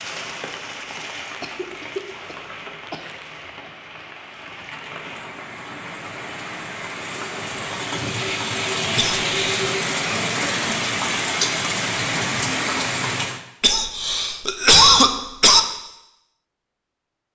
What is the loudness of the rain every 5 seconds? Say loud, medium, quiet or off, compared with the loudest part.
quiet, loud, loud, off.